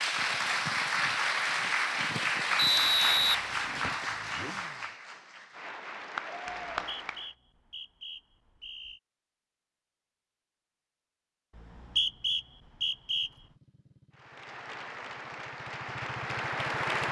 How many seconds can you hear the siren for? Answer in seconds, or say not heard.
not heard.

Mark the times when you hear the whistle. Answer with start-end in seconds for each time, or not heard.
2.5-4.0, 6.7-9.0, 11.6-13.3.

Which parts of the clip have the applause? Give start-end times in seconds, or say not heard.
0.0-7.3, 14.1-17.0.